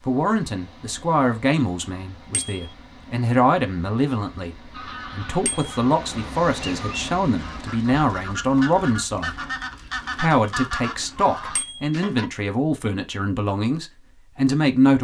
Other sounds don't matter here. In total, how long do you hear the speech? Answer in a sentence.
You can hear the speech for 14 seconds altogether.